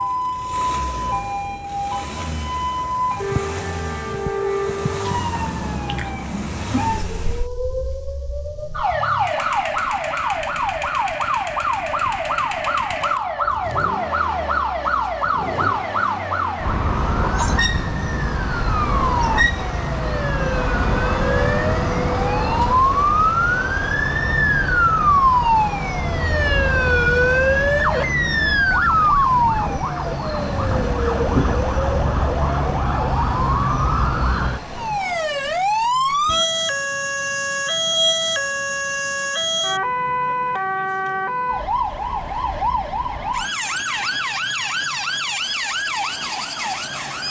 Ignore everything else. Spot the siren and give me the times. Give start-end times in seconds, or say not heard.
0.0-47.2.